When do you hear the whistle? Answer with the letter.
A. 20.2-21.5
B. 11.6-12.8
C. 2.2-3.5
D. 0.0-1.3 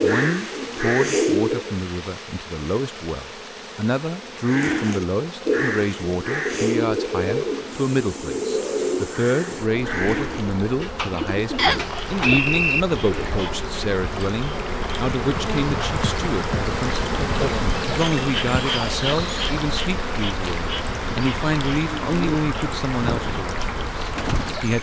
B.